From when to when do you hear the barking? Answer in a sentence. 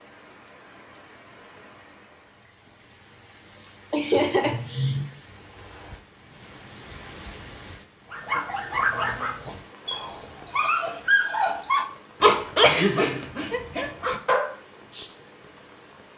The barking can be heard from 8.1 to 15.1 s.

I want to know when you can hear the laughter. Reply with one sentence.
You can hear the laughter from 3.9 to 5.0 s and from 12.6 to 13.3 s.